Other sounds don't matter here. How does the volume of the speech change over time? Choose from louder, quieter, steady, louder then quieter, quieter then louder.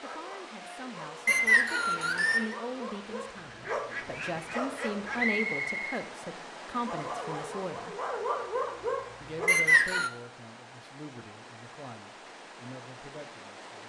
louder then quieter.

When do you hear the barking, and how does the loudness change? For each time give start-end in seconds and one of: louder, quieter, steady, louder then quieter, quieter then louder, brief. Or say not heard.
0.0-5.3 louder
6.8-9.5 brief.